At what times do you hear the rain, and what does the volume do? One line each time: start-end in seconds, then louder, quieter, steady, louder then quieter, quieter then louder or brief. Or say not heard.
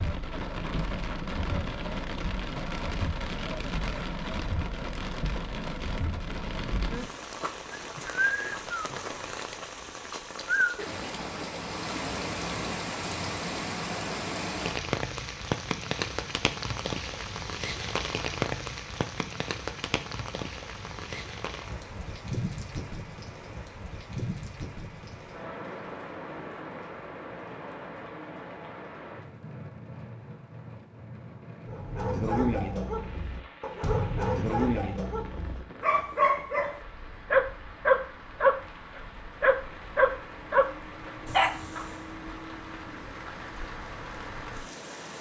0.0-45.1 quieter.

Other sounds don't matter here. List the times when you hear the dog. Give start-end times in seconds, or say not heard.
31.6-41.9.